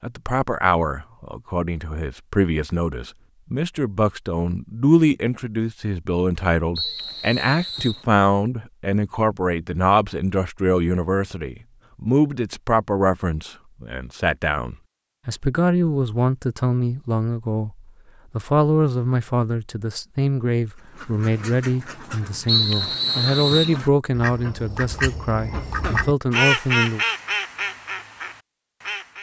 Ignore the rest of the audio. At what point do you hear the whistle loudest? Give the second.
23 s.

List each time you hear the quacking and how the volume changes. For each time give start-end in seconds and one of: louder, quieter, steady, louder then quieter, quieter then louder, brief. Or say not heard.
20.8-29.1 louder then quieter.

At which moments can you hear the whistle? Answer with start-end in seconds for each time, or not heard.
6.8-8.1, 22.4-23.8.